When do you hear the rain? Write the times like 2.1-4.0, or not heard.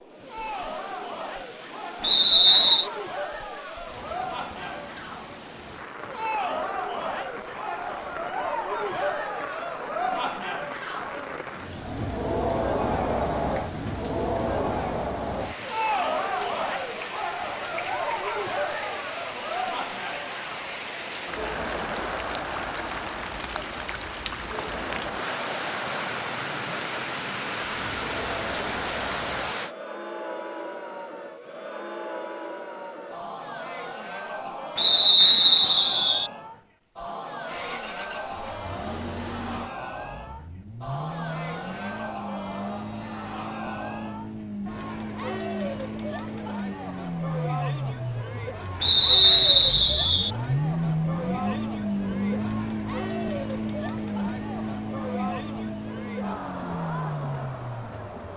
0.0-29.8.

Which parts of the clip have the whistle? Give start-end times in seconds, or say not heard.
2.0-2.9, 34.8-36.3, 48.8-50.3.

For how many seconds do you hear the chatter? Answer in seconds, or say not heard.
58 s.